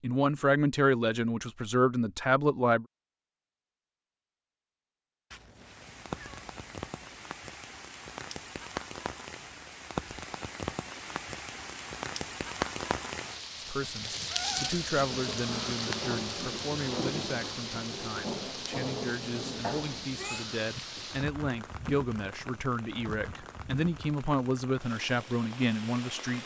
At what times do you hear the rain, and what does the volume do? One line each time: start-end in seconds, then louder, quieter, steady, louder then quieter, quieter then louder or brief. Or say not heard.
5.5-26.4 louder then quieter.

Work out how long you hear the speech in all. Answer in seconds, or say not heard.
16 s.